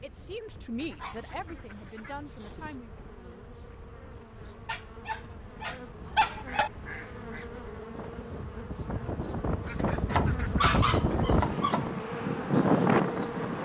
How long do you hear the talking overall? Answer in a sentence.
You can hear the talking for 3 seconds altogether.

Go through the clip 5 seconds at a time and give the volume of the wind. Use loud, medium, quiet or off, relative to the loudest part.
quiet, medium, loud.